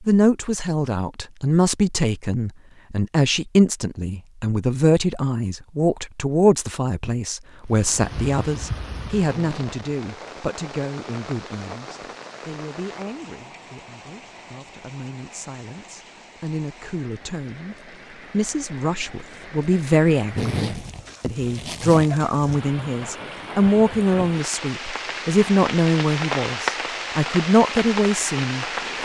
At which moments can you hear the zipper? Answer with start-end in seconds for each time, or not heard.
9.2-9.7, 20.3-22.2.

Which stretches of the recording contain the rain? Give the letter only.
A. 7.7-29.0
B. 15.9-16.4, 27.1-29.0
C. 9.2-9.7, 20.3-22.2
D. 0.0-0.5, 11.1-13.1
A.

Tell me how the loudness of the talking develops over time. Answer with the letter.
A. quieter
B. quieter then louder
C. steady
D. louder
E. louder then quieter
B.